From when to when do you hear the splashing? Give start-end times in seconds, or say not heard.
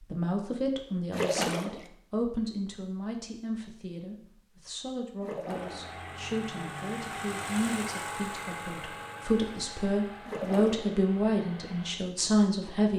1.1-1.9, 5.2-6.0, 10.2-11.0.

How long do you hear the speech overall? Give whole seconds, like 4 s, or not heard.
13 s.